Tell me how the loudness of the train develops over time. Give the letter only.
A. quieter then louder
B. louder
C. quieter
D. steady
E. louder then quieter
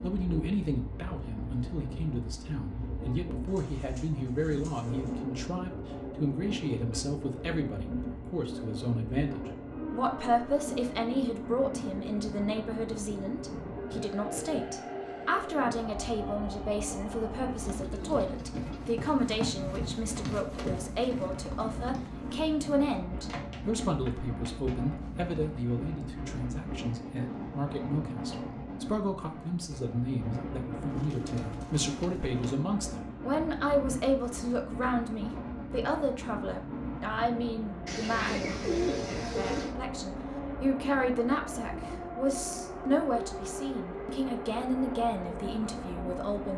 D.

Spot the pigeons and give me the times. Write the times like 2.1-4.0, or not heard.
3.5-5.2, 17.6-18.9, 30.9-32.6, 37.9-39.8.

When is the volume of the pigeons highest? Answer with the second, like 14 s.
39 s.